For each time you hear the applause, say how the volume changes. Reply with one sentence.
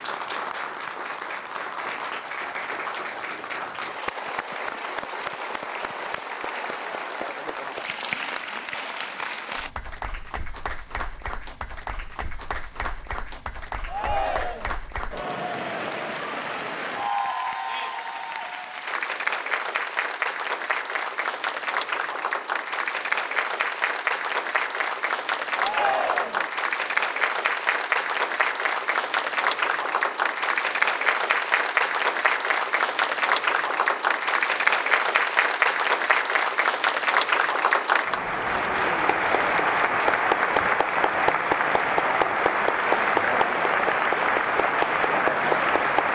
The applause can be heard from 0.0 to 46.1 s, getting louder.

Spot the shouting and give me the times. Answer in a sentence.
You can hear the shouting from 13.8 to 14.8 s and from 25.6 to 26.5 s.